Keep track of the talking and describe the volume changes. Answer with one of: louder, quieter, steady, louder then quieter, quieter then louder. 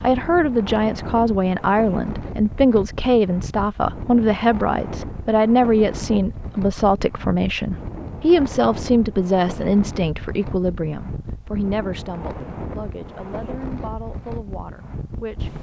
quieter.